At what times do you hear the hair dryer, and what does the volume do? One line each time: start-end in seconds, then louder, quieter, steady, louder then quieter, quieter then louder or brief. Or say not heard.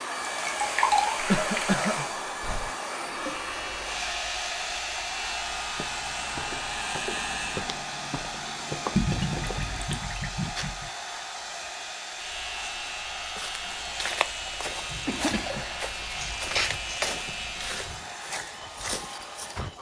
0.0-19.7 quieter.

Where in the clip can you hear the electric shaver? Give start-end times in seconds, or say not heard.
3.1-7.7, 12.2-17.9.